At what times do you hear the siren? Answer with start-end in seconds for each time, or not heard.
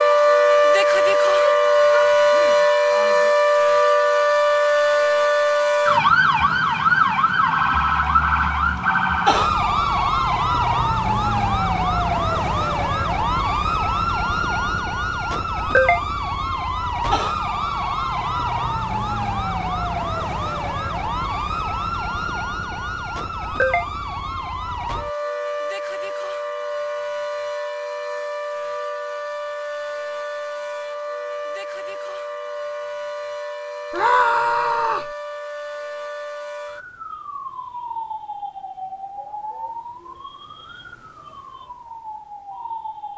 0.0-43.1.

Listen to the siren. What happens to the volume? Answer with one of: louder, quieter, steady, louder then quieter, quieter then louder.
quieter.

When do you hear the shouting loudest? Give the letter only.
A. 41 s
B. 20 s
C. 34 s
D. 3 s
C.